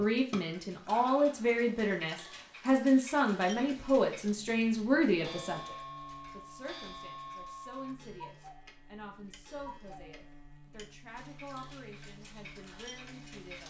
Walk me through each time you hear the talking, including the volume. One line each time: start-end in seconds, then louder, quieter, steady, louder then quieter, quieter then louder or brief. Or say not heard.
0.0-13.6 quieter.